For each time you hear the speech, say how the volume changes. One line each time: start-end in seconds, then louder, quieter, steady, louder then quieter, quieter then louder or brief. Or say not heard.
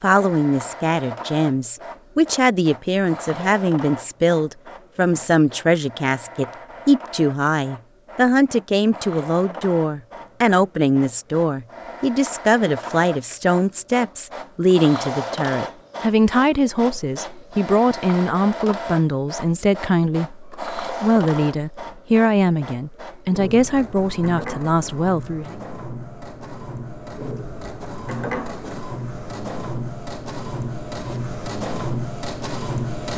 0.0-25.6 steady.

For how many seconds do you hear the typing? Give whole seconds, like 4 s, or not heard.
not heard.